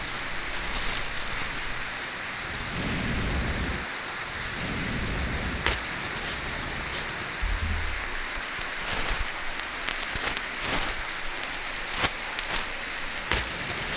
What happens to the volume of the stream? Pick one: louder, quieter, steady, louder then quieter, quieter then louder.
steady.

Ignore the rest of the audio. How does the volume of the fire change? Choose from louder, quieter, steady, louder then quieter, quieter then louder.
steady.